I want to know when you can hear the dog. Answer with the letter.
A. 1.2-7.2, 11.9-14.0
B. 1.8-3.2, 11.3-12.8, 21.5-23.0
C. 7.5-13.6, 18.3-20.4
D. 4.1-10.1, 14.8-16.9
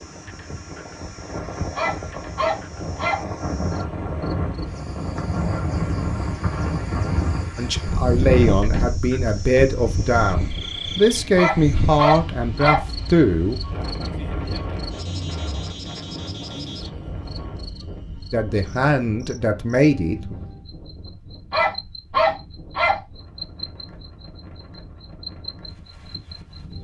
B.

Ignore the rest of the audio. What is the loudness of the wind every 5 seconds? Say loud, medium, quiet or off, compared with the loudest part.
medium, loud, medium, medium, quiet, quiet.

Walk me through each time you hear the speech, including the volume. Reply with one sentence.
You can hear the speech from 7.5 to 13.6 s, at a steady volume; and briefly from 18.3 to 20.4 s.